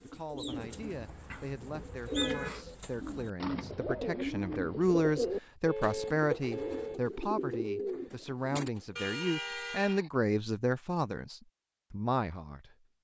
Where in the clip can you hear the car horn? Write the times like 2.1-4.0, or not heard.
0.6-2.5, 5.7-7.0, 8.9-10.1.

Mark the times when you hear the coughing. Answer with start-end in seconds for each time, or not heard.
not heard.